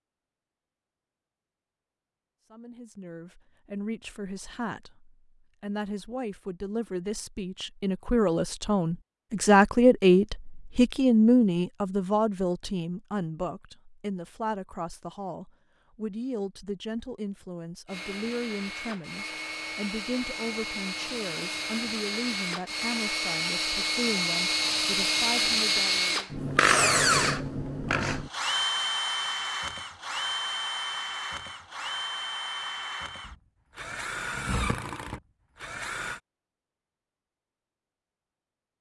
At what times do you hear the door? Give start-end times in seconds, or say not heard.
not heard.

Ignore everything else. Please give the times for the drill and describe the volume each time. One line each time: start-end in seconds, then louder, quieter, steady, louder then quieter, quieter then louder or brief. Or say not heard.
17.9-36.2 louder then quieter.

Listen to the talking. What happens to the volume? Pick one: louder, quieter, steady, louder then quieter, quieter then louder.
louder then quieter.